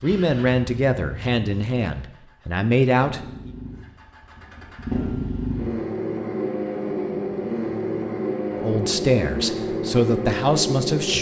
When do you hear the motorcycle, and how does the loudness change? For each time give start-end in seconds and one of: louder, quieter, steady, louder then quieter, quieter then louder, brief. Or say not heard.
0.0-11.1 louder.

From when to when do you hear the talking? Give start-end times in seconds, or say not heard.
0.0-3.5, 8.5-11.1.